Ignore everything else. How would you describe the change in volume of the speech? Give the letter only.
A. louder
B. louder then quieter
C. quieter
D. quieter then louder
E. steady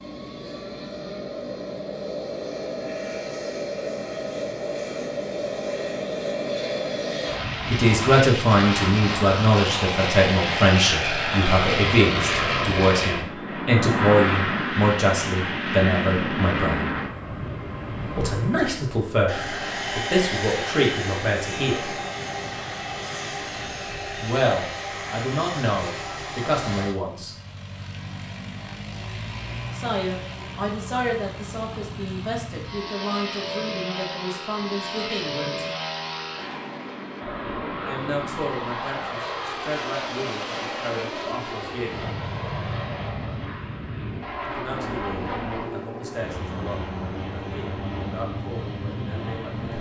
C.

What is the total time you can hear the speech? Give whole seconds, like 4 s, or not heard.
32 s.